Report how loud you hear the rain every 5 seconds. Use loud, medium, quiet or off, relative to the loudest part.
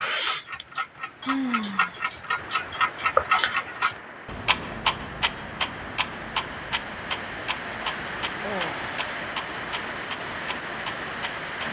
medium, loud, loud.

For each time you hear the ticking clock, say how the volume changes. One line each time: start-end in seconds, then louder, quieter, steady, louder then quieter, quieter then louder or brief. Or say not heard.
0.0-11.6 louder then quieter.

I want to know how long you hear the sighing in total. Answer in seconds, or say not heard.
2 s.